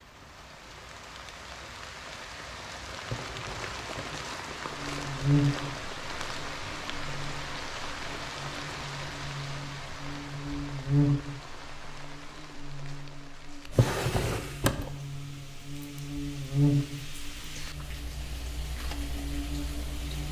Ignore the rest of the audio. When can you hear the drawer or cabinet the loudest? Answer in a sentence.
The loudest moment of the drawer or cabinet is at 14 seconds.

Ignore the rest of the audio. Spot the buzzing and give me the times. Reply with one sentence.
You can hear the buzzing from 4.7 to 20.2 s.